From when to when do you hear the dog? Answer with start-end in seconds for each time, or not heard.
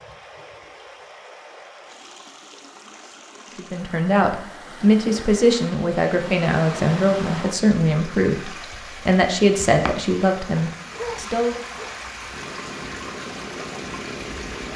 10.8-11.9.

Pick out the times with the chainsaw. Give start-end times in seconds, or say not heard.
12.2-14.7.